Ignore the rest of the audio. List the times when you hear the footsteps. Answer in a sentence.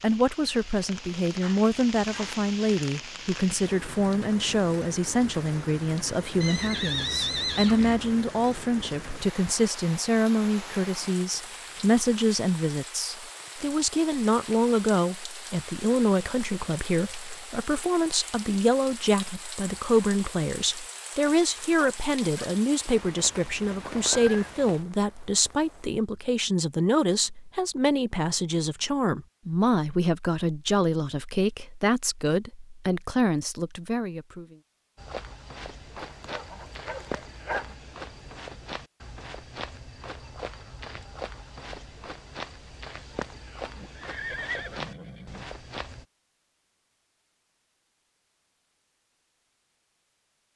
The footsteps can be heard from 35.0 to 46.0 s.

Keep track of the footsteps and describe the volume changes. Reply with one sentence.
The volume of the footsteps stays about the same.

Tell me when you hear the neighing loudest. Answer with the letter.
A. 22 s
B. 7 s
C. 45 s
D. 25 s
B.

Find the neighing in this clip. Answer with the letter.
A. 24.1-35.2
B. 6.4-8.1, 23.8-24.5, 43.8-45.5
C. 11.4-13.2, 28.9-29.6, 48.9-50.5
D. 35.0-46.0
B.